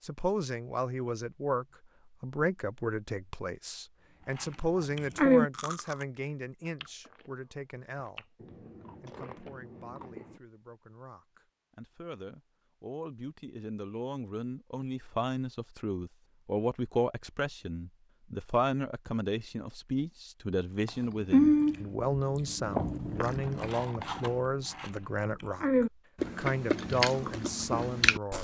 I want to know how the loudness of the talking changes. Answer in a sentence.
The volume of the talking goes down, then up.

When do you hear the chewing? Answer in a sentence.
You can hear the chewing from 4.2 to 7.3 s, from 8.0 to 10.4 s and from 20.9 to 28.3 s.